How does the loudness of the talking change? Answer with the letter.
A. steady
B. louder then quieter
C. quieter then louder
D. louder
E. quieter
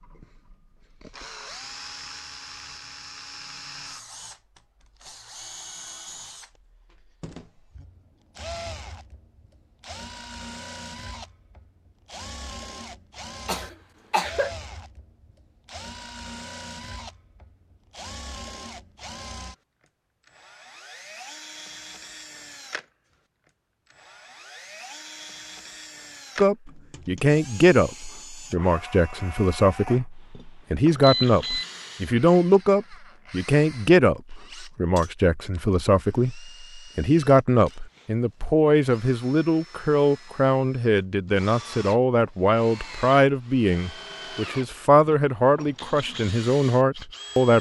A.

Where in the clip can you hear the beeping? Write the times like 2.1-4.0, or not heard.
31.0-31.6.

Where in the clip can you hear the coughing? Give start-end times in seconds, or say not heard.
13.4-14.5.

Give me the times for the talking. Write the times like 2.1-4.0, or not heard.
26.4-47.5.